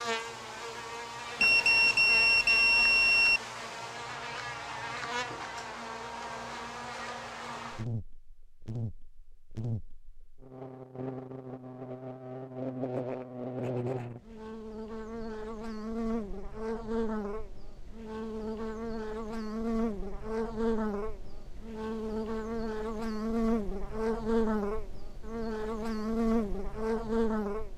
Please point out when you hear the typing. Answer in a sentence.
The typing can't be heard in this clip.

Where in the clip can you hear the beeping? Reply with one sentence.
The beeping can be heard from 1.4 to 3.4 s.